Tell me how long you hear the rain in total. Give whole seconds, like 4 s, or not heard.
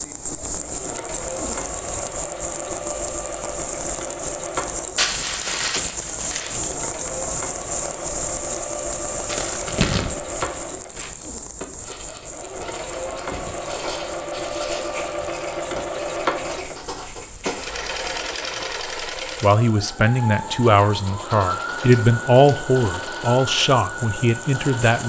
25 s.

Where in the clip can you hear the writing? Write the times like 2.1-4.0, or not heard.
11.8-18.4.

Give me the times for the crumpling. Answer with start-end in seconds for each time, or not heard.
5.0-6.8, 9.2-11.1, 21.8-22.6.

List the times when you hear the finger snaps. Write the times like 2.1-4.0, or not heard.
not heard.